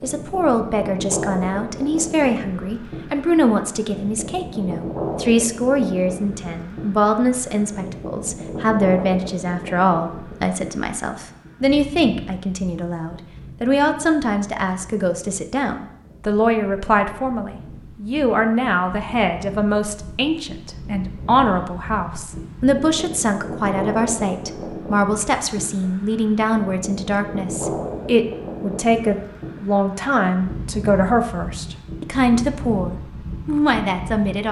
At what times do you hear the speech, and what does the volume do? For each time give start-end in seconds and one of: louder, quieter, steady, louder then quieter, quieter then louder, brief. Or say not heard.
0.0-34.4 steady.